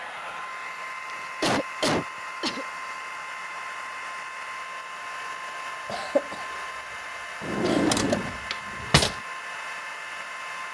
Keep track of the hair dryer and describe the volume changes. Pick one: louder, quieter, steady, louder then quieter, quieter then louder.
steady.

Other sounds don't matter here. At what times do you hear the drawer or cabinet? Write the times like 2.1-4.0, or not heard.
7.4-9.2.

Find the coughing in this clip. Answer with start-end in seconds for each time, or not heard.
1.1-2.6, 5.8-6.4, 7.6-8.3.